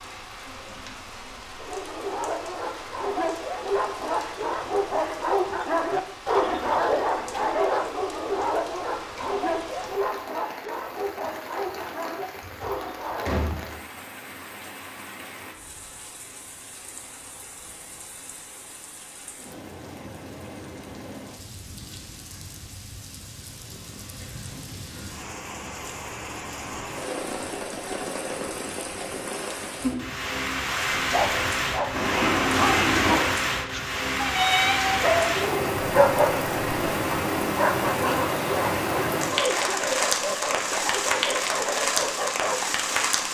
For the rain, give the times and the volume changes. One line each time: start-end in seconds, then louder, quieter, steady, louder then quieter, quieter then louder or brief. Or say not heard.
0.0-43.2 louder.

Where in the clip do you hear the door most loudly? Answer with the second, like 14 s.
33 s.